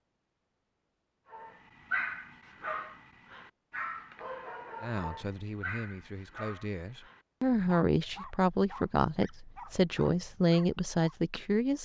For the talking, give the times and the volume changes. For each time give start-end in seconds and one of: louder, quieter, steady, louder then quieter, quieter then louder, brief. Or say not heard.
4.8-11.8 louder.